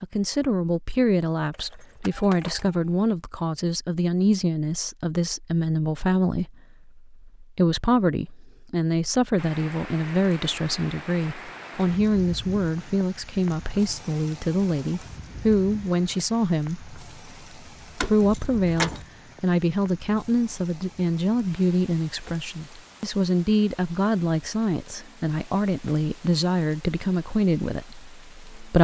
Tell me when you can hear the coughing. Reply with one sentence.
You can't hear the coughing here.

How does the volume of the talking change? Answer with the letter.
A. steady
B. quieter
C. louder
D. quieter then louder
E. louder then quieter
A.